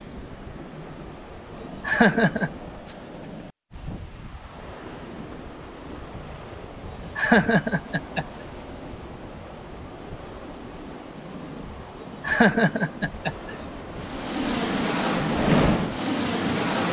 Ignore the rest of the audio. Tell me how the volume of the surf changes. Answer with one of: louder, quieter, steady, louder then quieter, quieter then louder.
louder.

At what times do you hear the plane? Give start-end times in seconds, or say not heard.
13.9-16.8.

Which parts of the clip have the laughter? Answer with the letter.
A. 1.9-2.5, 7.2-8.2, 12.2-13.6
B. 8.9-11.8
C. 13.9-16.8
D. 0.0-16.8
A.